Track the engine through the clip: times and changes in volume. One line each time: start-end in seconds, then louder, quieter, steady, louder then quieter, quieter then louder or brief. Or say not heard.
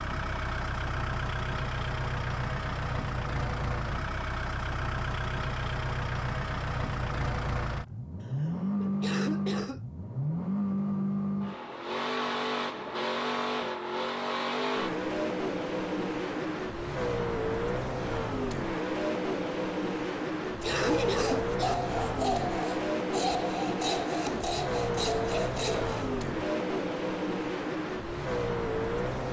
0.0-29.2 steady.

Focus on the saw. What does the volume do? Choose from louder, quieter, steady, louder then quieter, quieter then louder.
steady.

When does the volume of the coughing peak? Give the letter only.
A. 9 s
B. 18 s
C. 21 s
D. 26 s
C.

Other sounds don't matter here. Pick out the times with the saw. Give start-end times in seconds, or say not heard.
20.7-26.1.